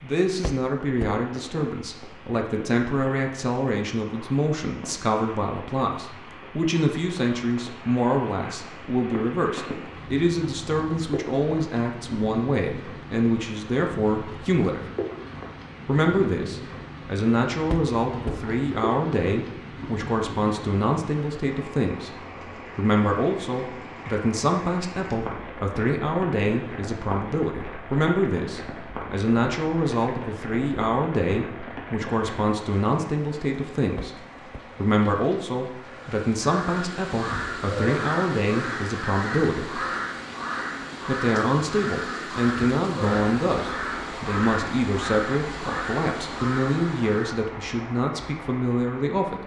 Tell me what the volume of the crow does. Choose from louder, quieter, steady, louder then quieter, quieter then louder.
steady.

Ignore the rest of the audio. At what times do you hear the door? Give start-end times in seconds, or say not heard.
0.4-1.2, 17.6-18.5, 34.0-34.6.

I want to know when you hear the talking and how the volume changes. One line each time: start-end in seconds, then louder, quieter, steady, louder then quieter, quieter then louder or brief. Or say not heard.
0.0-14.8 steady
15.8-39.8 steady
41.0-49.4 steady.